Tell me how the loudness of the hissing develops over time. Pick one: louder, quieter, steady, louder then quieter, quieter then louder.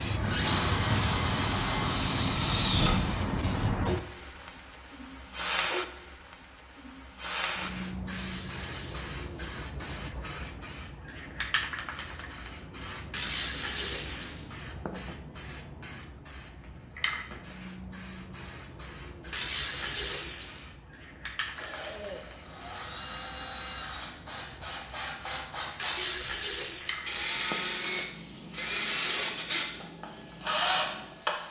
quieter.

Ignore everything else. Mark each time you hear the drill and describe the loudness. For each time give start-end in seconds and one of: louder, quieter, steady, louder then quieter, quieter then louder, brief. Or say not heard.
0.1-3.0 brief
21.5-31.4 louder.